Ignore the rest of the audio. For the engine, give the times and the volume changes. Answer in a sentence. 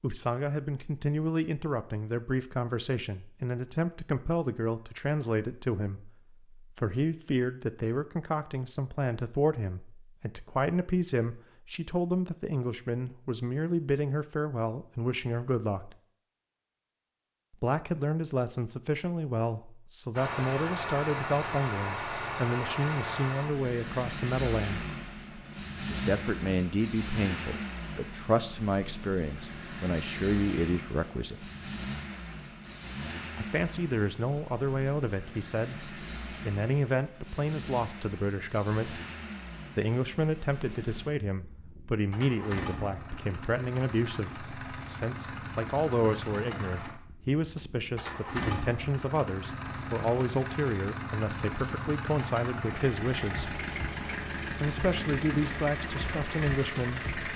The engine can be heard from 20.1 to 57.3 s, getting quieter then louder.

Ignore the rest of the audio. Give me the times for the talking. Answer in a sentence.
The talking can be heard from 0.0 to 15.9 s, from 17.5 to 24.9 s, from 25.9 to 31.5 s, from 33.4 to 39.0 s, from 39.8 to 53.5 s and from 54.6 to 57.1 s.